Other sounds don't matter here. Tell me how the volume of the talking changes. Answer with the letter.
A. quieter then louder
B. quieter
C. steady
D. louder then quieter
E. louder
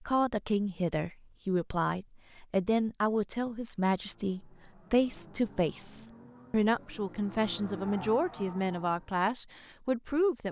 C.